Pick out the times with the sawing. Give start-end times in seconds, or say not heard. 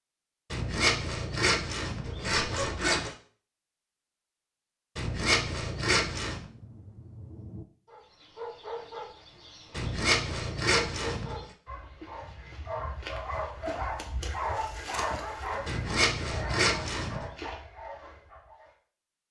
0.5-3.1, 5.0-6.5, 9.7-11.4, 15.7-17.3.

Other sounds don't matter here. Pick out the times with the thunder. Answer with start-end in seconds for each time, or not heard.
6.3-7.7.